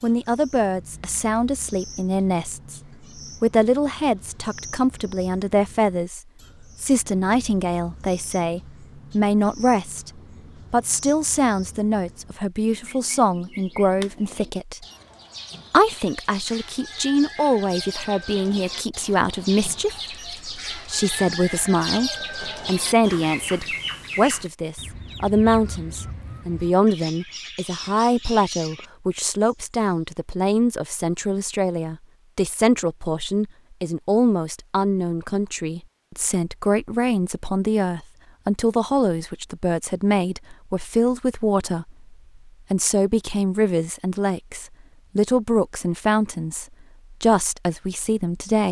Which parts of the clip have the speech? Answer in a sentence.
The speech can be heard from 0.0 to 2.8 s, from 3.4 to 6.2 s, from 6.8 to 14.8 s and from 15.7 to 48.6 s.